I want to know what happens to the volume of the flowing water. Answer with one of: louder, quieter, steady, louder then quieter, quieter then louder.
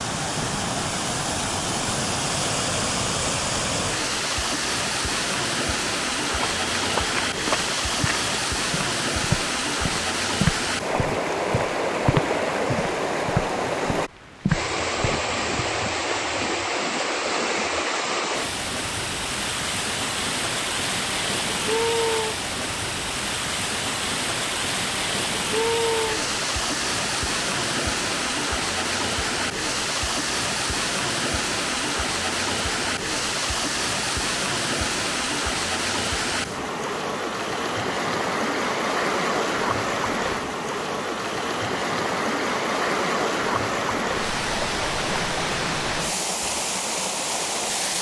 steady.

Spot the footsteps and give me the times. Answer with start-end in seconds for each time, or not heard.
6.2-15.7.